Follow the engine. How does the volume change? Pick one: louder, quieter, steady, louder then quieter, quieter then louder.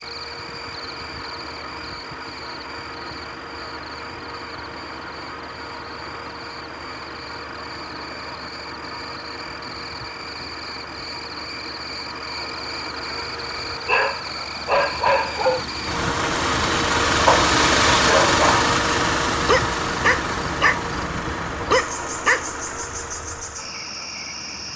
louder then quieter.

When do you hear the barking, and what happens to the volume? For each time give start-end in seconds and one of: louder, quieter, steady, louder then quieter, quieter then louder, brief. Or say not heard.
13.8-18.6 quieter then louder
19.4-20.8 brief
21.7-22.4 brief.